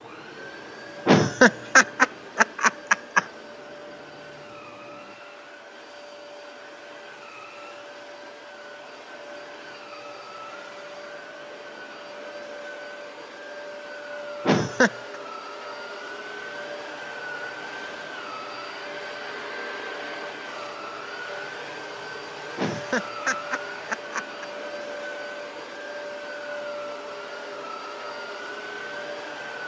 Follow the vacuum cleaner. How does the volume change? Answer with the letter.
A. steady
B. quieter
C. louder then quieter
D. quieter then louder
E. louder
E.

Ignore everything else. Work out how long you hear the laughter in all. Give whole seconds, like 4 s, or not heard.
5 s.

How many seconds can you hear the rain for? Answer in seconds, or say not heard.
not heard.